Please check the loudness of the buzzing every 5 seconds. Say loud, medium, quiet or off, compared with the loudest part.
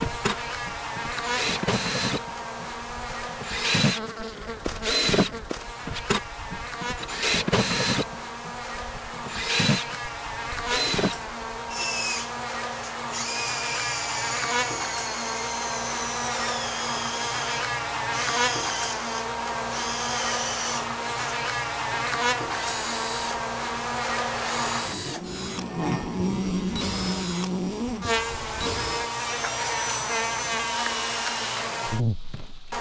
medium, medium, loud, loud, loud, loud, loud.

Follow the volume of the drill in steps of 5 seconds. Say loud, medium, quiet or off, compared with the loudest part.
loud, loud, loud, medium, medium, medium, medium.